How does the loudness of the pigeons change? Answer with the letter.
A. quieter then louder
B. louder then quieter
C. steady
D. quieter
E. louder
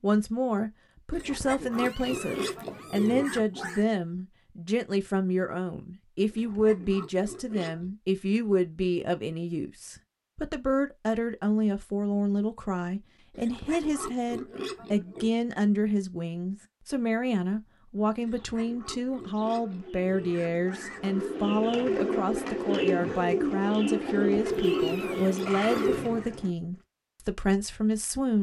E.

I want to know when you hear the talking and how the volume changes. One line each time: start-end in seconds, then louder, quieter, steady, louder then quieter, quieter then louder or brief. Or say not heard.
0.0-28.3 steady.